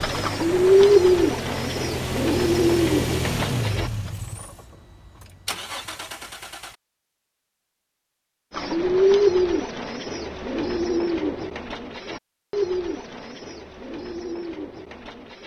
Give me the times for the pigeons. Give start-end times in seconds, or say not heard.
0.0-4.1, 8.5-15.4.